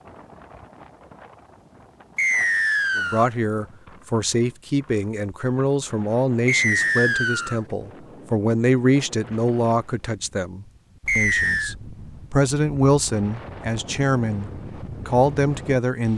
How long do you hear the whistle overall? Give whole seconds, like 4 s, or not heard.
3 s.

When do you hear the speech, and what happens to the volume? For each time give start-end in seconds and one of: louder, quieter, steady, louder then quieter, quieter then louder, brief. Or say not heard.
3.0-16.1 steady.